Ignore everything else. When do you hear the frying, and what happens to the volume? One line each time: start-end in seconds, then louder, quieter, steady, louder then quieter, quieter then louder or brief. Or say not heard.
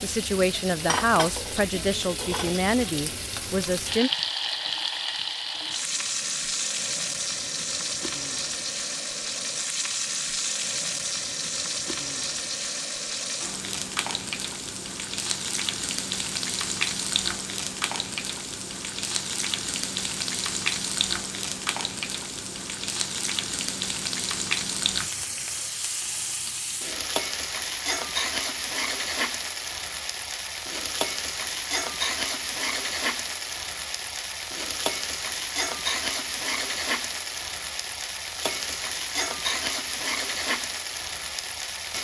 0.0-41.9 steady.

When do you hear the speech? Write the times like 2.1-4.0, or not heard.
0.0-4.1.